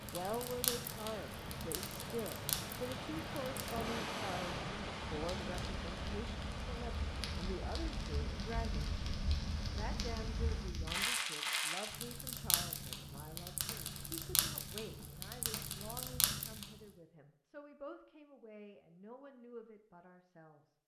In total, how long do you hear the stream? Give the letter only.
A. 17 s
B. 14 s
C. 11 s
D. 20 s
C.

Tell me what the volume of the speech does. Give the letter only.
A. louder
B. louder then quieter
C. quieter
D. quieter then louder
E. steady
C.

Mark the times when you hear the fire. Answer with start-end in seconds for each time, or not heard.
0.0-16.8.